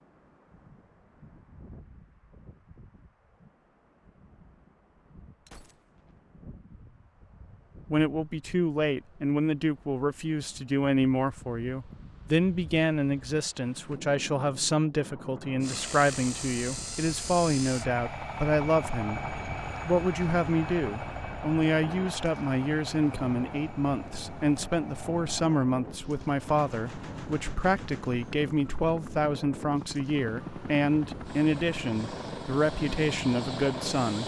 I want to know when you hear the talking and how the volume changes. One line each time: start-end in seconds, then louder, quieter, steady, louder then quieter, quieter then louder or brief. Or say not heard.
7.9-34.2 steady.